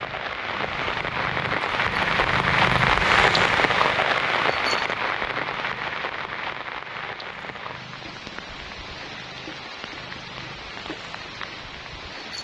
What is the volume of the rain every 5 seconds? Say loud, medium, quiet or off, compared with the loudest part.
loud, medium, quiet.